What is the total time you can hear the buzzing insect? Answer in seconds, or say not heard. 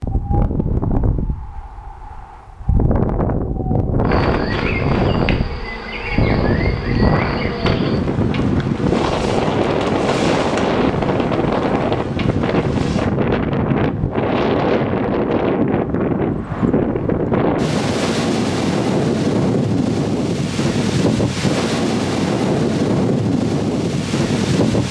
9 s.